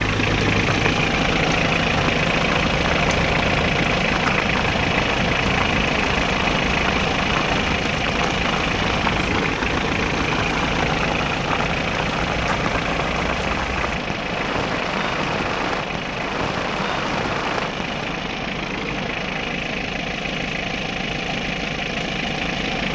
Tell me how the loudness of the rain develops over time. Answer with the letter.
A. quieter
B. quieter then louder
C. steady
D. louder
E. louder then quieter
C.